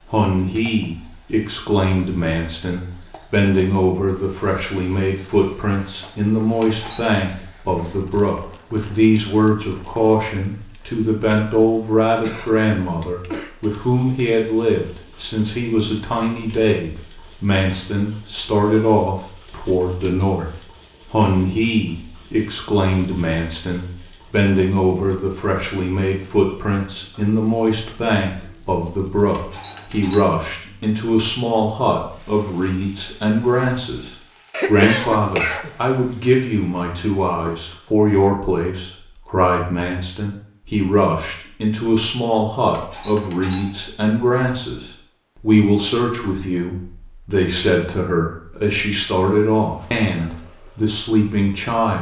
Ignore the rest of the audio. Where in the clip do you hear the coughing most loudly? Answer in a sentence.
The loudest moment of the coughing is at 35 seconds.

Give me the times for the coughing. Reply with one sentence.
The coughing can be heard from 12.2 to 13.5 s and from 34.5 to 35.8 s.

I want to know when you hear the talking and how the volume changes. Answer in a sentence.
You can hear the talking from 0.1 to 51.9 s, at a steady volume.